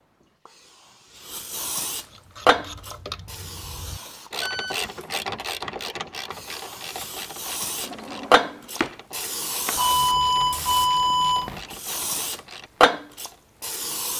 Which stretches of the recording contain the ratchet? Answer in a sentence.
The ratchet can be heard from 2.0 to 13.4 s.